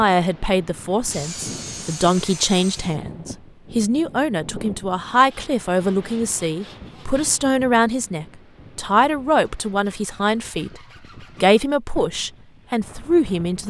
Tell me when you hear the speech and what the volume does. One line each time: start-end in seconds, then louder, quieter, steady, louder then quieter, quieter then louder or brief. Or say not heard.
0.0-10.8 steady
11.4-13.6 brief.